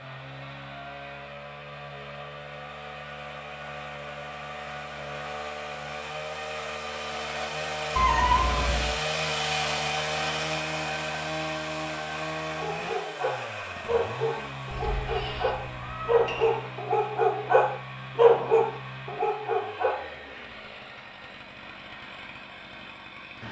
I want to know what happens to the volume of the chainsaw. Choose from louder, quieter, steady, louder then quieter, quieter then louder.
louder then quieter.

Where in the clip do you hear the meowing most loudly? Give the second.
8 s.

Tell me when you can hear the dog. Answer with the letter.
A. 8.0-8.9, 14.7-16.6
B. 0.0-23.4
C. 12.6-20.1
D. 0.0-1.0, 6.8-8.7
C.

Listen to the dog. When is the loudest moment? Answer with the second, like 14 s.
18 s.